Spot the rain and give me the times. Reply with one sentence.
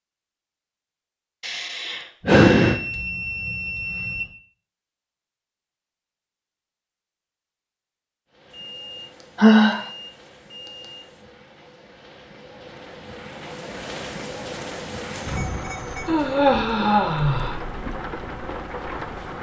The rain can be heard from 8.2 to 19.3 s.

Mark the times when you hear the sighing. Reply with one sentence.
The sighing can be heard from 1.4 to 2.8 s, from 9.3 to 9.8 s and from 16.1 to 17.6 s.